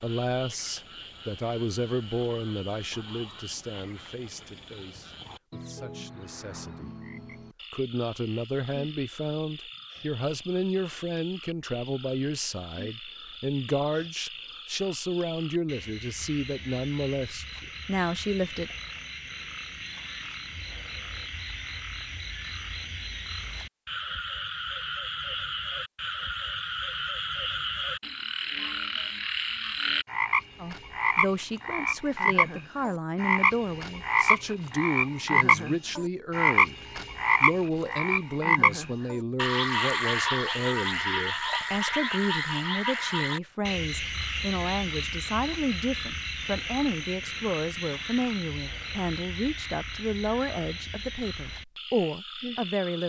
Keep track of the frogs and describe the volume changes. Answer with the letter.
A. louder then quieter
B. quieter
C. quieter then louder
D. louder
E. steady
A.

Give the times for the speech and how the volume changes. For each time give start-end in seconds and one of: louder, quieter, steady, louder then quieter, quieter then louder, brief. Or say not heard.
0.0-7.0 quieter
7.7-18.8 steady
30.6-53.0 steady.